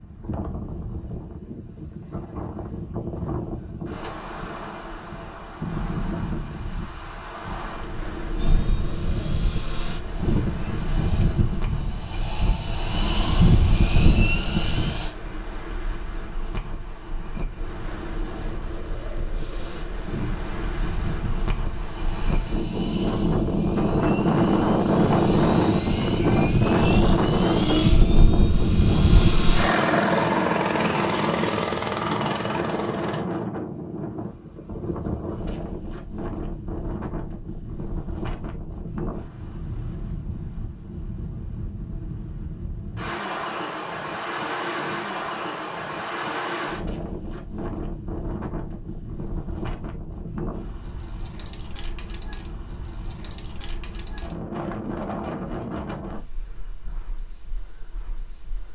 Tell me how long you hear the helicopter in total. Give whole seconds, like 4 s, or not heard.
21 s.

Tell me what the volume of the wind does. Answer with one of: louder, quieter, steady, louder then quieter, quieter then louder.
louder then quieter.